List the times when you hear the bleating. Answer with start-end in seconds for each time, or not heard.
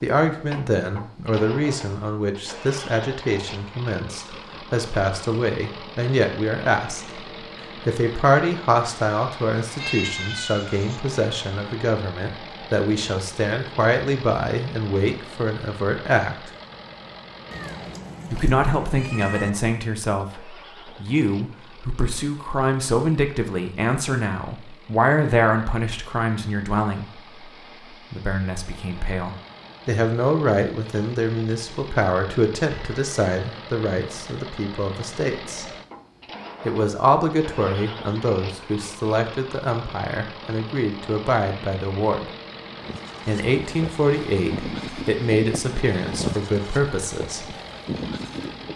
42.8-48.7.